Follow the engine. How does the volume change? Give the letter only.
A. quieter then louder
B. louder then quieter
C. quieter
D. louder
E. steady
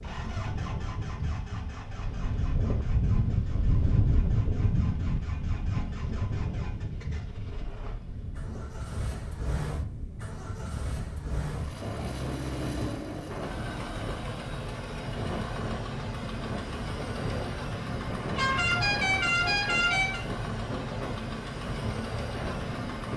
D.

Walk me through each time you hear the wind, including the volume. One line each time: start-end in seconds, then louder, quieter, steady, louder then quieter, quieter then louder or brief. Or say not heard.
0.0-23.1 quieter.